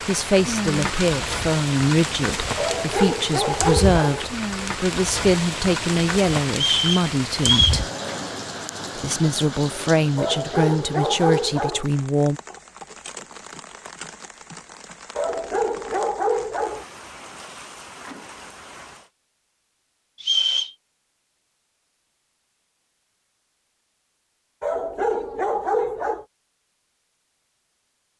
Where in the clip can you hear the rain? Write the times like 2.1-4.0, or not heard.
0.0-19.1.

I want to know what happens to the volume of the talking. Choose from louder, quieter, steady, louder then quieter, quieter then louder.
steady.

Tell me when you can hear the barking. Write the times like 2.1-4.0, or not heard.
2.5-4.2, 10.2-11.8, 15.2-16.9, 24.6-26.2.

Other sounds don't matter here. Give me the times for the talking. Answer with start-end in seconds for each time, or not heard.
0.1-7.9, 8.9-12.4.